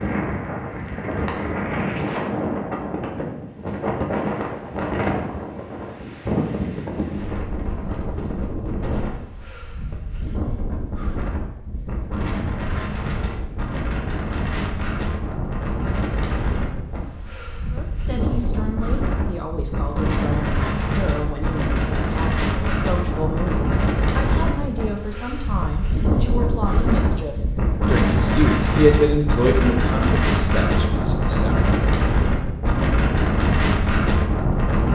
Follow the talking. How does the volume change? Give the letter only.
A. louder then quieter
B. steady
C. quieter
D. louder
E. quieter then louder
D.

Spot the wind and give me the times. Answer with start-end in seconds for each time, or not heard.
0.0-34.9.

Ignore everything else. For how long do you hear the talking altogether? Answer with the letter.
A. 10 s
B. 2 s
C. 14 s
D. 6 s
C.